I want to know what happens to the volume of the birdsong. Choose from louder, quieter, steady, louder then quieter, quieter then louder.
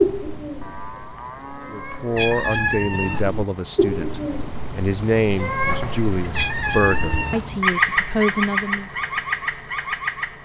louder.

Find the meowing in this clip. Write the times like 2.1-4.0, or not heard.
2.1-3.5, 6.3-7.6.